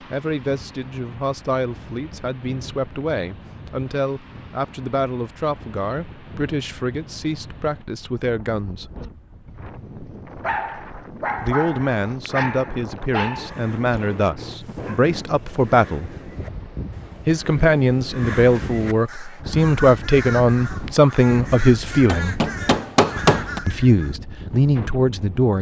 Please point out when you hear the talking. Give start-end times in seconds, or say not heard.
0.0-8.9, 11.4-16.1, 17.2-22.4, 23.6-25.5.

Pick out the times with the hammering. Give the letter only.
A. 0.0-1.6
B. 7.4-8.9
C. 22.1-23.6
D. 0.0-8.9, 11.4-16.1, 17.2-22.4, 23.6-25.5
C.